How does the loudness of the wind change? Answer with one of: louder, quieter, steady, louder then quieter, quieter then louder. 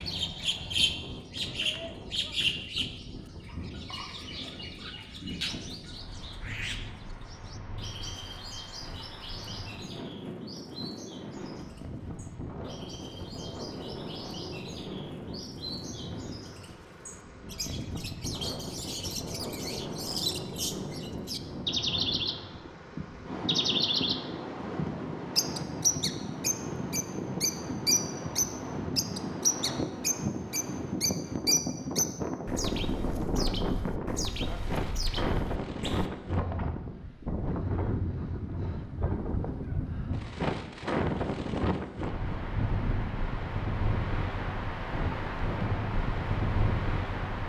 louder.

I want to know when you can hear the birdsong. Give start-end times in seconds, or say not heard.
0.0-36.1.